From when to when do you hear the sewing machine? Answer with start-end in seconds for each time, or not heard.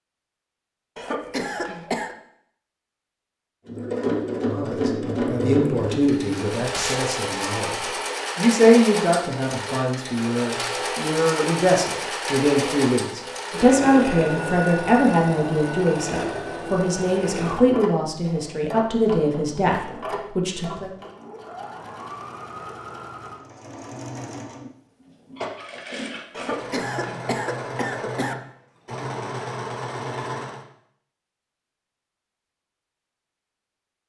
3.6-30.6.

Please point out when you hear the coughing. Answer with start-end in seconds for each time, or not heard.
0.9-2.1, 26.3-28.4.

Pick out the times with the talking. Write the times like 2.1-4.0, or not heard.
4.5-20.9.